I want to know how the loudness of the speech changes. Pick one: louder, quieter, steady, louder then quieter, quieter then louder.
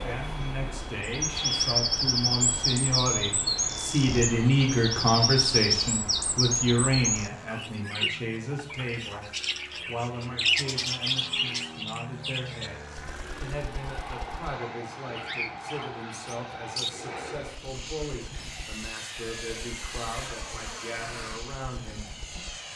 quieter.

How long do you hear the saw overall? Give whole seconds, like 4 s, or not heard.
2 s.